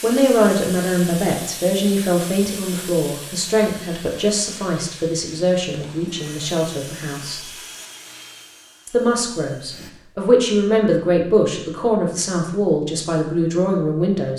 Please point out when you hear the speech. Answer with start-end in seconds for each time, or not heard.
0.0-7.5, 8.8-14.3.